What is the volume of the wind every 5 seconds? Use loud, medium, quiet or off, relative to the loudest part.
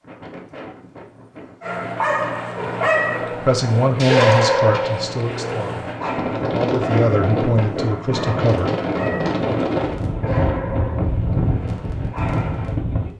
quiet, loud, loud.